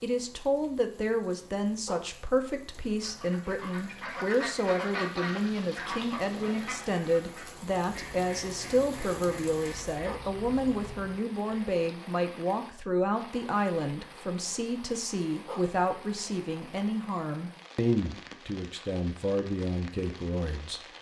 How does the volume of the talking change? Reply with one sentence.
The volume of the talking stays about the same.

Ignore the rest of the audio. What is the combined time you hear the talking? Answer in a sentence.
You can hear the talking for 21 seconds altogether.